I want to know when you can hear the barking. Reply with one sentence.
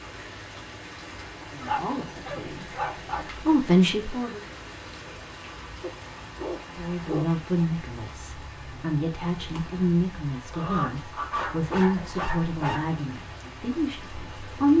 You can hear the barking from 1.6 to 3.2 s, from 5.8 to 7.3 s and from 10.5 to 12.9 s.